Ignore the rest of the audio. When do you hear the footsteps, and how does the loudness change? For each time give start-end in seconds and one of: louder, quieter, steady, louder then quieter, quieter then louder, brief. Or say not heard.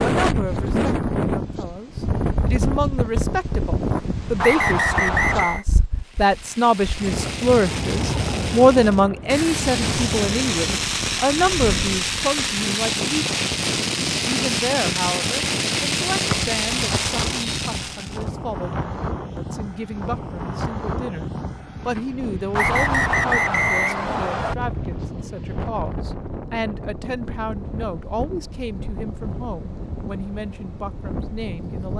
not heard.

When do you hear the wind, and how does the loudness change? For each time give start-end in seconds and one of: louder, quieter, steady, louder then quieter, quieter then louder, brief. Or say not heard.
0.0-31.9 quieter.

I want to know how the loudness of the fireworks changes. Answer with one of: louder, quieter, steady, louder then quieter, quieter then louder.
louder.